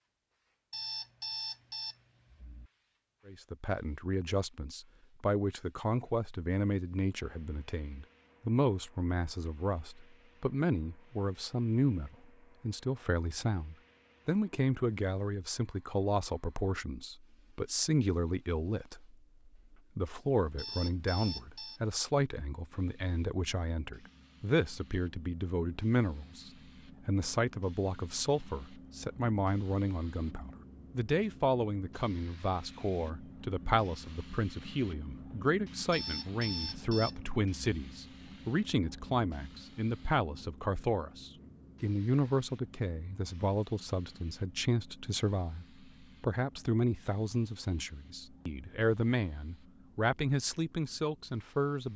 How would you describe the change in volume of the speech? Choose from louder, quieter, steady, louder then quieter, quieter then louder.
steady.